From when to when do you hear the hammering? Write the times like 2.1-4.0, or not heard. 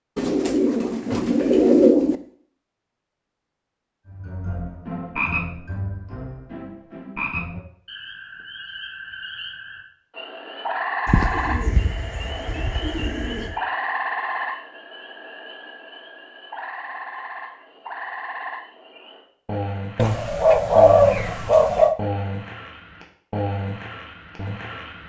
not heard.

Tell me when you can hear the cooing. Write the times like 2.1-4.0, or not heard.
0.1-2.1, 11.1-13.6, 19.9-21.9.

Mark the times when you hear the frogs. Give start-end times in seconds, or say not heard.
4.0-25.0.